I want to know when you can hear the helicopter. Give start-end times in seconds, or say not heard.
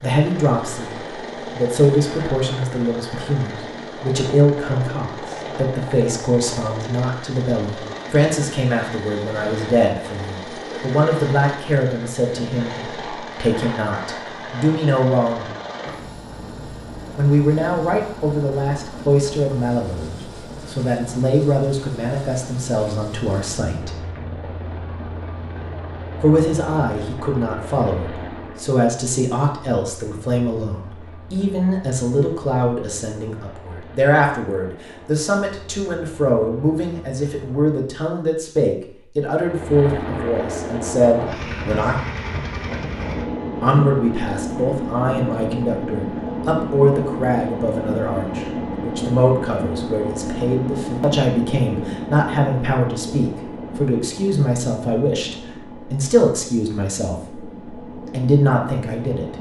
0.0-37.8, 39.4-59.3.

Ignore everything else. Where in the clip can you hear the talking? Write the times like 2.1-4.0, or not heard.
0.0-0.9, 1.6-15.4, 17.1-23.9, 26.2-42.0, 43.6-59.3.